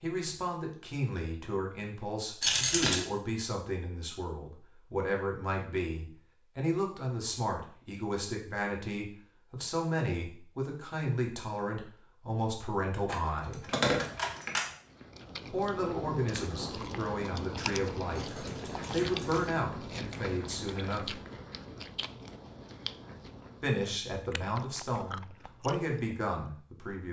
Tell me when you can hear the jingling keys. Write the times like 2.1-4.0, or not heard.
2.4-3.0, 13.1-14.7, 18.1-19.6.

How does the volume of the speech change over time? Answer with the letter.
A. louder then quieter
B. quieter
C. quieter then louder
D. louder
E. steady
E.